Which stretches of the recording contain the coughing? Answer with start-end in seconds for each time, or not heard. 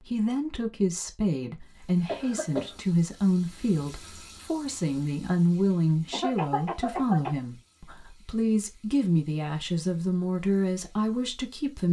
2.0-2.8, 6.1-7.3.